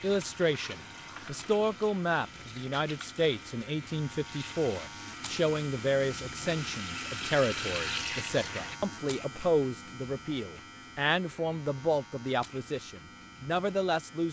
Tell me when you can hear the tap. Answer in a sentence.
The tap can be heard from 0.0 to 8.8 s.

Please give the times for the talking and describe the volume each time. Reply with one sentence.
The talking can be heard from 0.0 to 14.2 s, at a steady volume.